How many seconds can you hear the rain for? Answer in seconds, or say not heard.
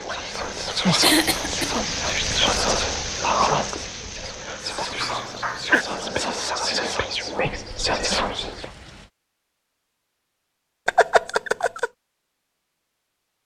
9 s.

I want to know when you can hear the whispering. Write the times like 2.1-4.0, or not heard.
0.1-8.7.